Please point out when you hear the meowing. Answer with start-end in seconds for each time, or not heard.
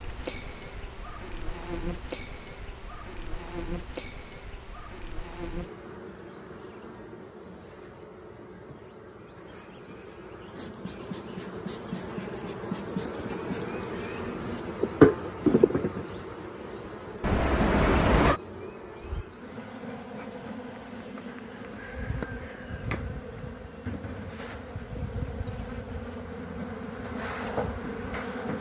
17.2-18.4.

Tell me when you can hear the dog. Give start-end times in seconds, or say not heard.
not heard.